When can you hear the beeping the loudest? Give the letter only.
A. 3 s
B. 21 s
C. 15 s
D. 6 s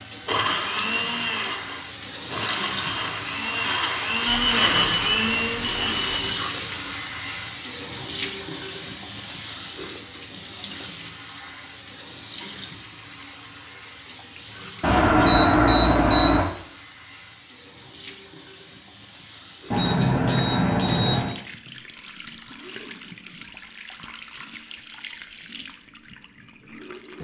C.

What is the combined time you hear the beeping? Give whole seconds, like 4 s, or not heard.
5 s.